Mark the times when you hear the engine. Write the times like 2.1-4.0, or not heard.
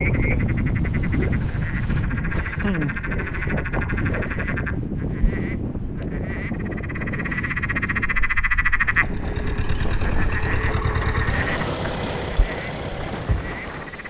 8.9-14.0.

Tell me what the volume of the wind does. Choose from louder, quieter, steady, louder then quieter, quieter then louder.
quieter.